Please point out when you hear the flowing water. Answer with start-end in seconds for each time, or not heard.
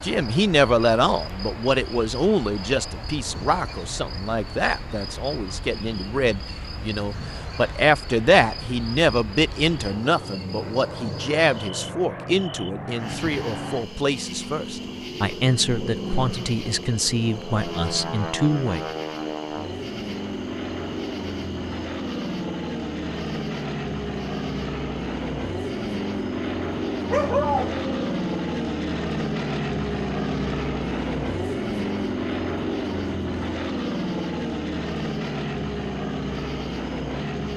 not heard.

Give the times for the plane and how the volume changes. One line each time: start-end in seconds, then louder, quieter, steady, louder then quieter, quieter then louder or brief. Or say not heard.
0.0-37.5 louder.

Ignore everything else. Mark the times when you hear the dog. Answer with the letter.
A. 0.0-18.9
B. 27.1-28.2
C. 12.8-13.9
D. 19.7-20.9
B.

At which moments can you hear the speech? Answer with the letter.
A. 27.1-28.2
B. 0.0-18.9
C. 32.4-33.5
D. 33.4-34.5
B.